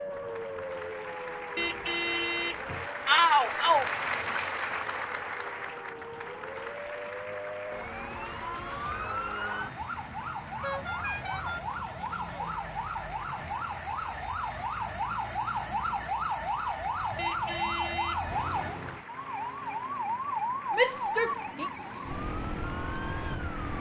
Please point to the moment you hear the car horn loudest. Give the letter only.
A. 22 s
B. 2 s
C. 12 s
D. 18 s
B.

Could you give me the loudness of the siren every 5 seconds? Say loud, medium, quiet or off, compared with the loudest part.
medium, medium, loud, loud, loud.